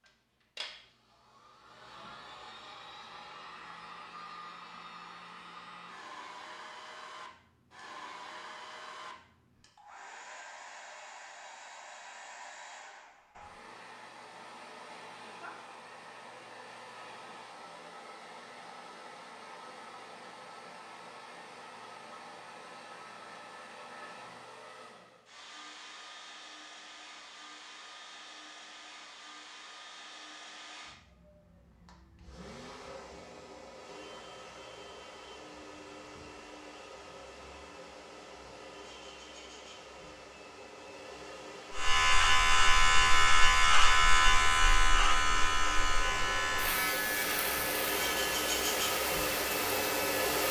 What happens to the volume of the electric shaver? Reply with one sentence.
The loudness of the electric shaver goes down.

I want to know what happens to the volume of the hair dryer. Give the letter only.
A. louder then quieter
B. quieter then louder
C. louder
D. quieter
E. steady
C.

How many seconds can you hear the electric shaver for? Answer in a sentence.
You can hear the electric shaver for 9 seconds altogether.